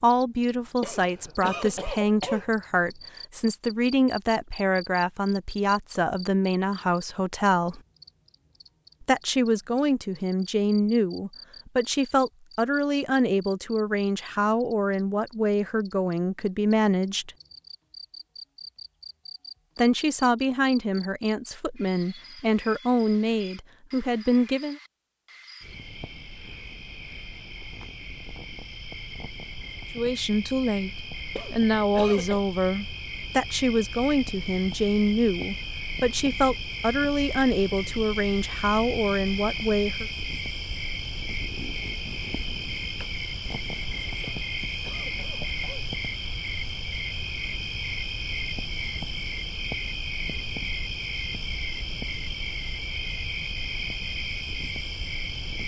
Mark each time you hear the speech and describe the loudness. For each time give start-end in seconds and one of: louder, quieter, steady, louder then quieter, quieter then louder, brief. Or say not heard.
0.0-7.8 steady
9.0-17.3 steady
19.8-24.8 quieter then louder
29.9-30.9 brief
31.5-40.0 steady.